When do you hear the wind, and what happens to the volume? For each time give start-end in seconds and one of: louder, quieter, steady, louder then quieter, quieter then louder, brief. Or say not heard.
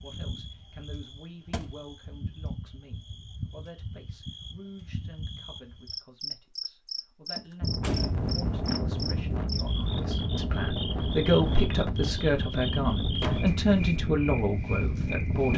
7.6-15.5 steady.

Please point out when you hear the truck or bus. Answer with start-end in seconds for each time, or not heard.
not heard.